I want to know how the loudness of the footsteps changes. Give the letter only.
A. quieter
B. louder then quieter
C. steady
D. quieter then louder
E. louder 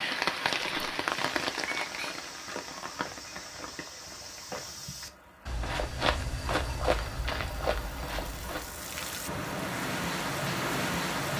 E.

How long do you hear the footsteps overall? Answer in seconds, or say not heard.
8 s.